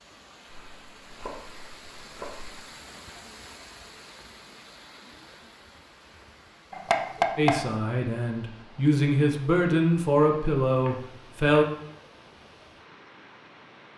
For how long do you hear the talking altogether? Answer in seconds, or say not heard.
4 s.